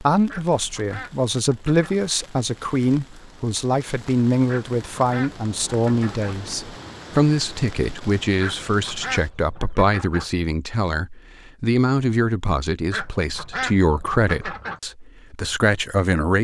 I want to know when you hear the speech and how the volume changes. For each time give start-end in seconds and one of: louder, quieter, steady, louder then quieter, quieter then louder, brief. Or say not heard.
0.0-16.3 steady.